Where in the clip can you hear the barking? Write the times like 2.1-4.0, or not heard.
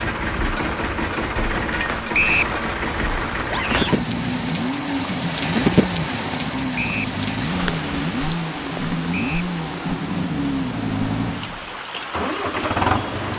not heard.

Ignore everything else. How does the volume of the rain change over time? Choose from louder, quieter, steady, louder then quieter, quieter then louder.
louder then quieter.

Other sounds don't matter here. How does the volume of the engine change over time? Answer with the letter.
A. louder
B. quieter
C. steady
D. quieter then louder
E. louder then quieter
C.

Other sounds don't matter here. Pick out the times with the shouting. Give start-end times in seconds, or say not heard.
3.5-4.0.